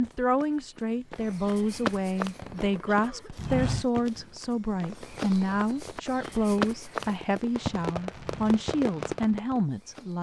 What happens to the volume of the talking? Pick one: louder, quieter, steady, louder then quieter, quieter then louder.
steady.